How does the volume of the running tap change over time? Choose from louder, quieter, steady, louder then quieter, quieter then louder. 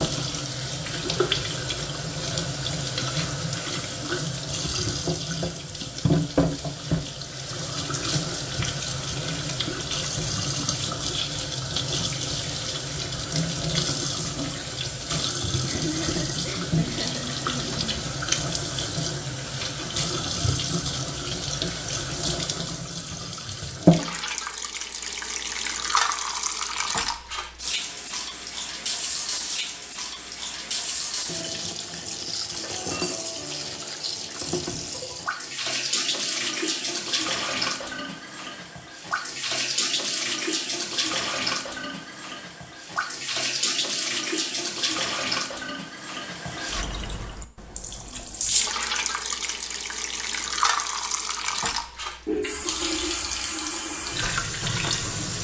steady.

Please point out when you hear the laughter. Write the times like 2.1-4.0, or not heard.
15.6-18.1.